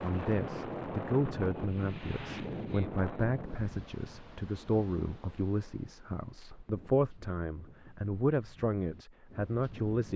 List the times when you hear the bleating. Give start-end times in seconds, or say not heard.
not heard.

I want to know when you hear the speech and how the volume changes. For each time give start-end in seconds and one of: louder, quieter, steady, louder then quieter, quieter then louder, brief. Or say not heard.
0.0-10.1 steady.